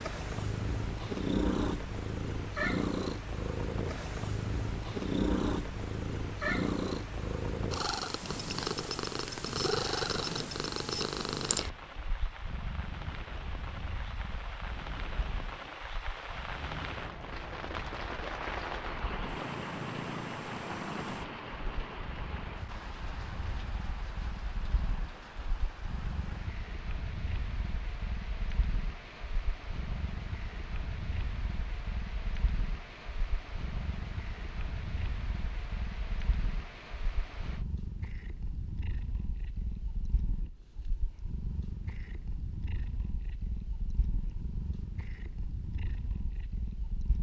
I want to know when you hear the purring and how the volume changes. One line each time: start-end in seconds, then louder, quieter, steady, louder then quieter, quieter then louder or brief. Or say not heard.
0.0-47.1 quieter.